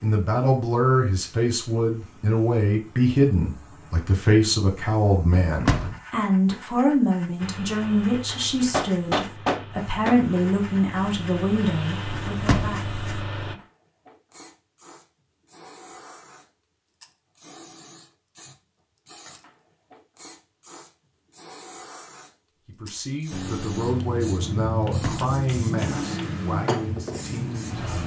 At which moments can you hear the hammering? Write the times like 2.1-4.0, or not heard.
8.3-10.2, 24.9-26.3.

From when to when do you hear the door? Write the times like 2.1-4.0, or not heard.
5.3-6.0, 12.1-12.8, 24.9-25.3.